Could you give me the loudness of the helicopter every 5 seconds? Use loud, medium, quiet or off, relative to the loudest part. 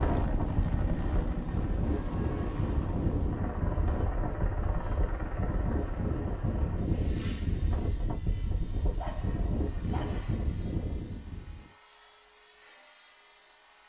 loud, medium, quiet.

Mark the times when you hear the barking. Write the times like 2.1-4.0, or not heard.
8.9-10.4.